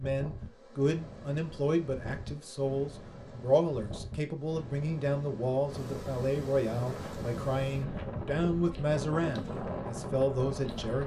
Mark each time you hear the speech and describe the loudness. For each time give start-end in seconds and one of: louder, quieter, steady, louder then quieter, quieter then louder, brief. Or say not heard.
0.0-11.0 steady.